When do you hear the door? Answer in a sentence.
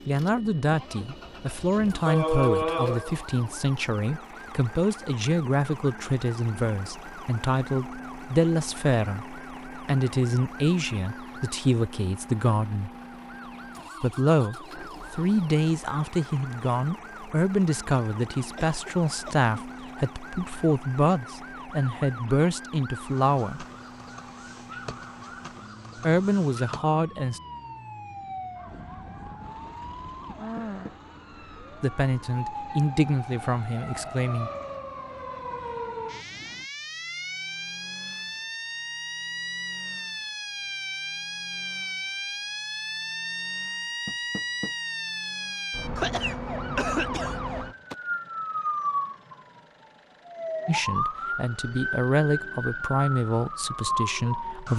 The door can be heard from 0.5 to 1.1 s, from 30.4 to 30.9 s and from 44.0 to 44.8 s.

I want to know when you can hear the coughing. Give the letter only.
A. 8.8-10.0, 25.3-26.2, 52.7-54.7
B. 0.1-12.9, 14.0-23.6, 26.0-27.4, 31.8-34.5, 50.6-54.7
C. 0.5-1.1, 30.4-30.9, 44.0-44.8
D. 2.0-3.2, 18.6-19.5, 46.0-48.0
D.